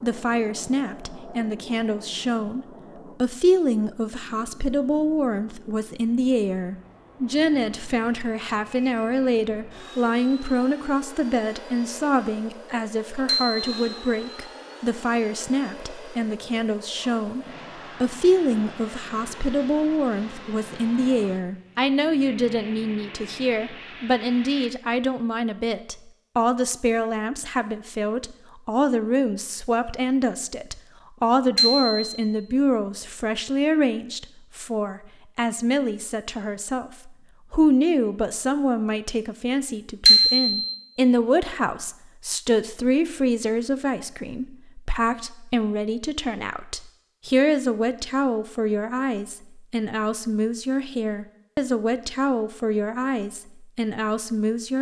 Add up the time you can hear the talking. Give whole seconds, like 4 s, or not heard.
55 s.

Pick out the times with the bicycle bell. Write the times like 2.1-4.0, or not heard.
13.2-13.7, 31.6-32.1, 40.0-40.7.